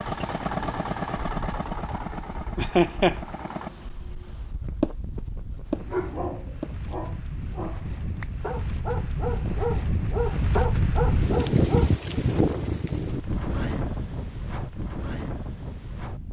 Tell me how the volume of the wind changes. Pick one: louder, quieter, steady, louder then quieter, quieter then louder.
louder then quieter.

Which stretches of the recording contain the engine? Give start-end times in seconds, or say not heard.
0.0-3.7.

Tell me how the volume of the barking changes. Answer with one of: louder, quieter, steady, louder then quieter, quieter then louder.
quieter then louder.